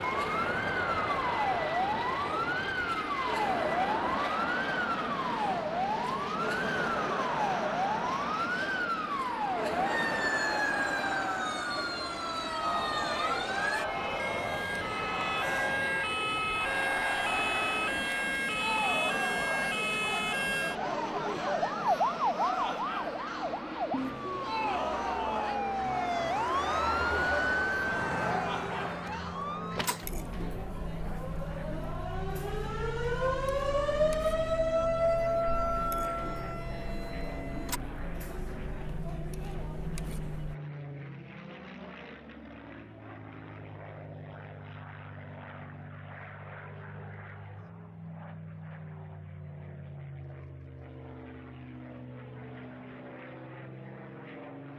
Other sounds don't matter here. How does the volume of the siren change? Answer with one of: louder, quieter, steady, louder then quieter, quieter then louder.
steady.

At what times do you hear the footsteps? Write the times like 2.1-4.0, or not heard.
not heard.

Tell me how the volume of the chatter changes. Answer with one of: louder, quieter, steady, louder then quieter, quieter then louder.
quieter.